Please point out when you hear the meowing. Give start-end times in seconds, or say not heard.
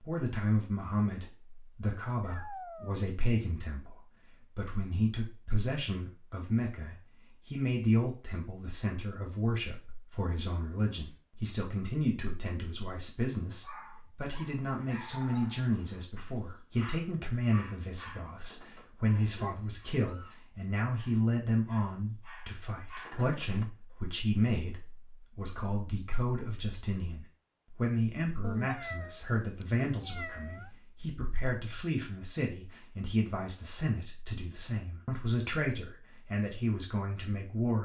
2.1-3.0, 19.4-20.4, 28.4-30.8.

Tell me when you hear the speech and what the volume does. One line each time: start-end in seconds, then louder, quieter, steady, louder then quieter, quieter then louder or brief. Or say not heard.
0.0-37.8 steady.